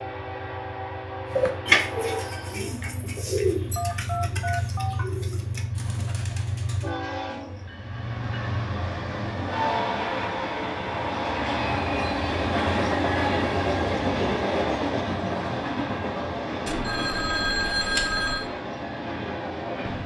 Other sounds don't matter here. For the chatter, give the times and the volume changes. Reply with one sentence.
The chatter can't be heard in this clip.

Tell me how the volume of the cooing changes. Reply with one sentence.
The volume of the cooing goes down.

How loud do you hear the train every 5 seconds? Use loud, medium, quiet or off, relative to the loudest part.
medium, medium, loud, medium.